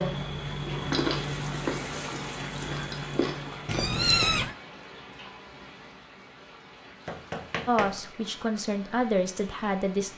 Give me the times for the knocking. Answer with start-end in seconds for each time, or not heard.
7.0-8.0.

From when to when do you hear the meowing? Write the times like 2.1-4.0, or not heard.
3.6-4.5.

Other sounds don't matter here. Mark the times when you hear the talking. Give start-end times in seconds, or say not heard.
7.7-10.1.